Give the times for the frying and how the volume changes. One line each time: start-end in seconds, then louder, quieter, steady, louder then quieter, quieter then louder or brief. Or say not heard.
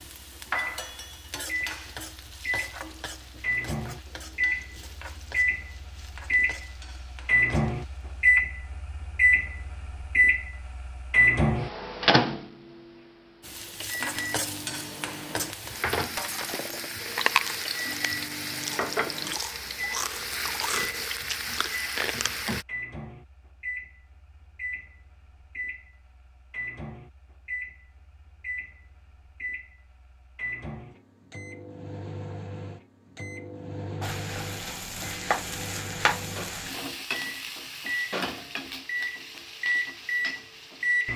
0.0-8.4 quieter
13.4-22.6 steady
34.0-41.1 quieter.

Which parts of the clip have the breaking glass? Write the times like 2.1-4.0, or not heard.
16.1-17.0.